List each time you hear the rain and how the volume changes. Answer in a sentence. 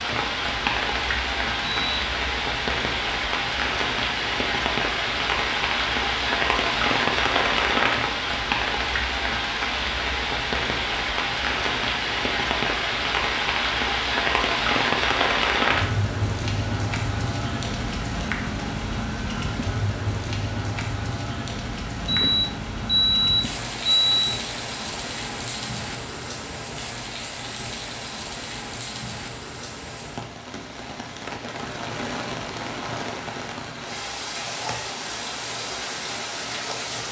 The rain can be heard from 0.0 to 37.0 s, getting quieter.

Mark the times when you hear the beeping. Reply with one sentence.
The beeping can be heard from 1.6 to 2.1 s and from 22.1 to 24.4 s.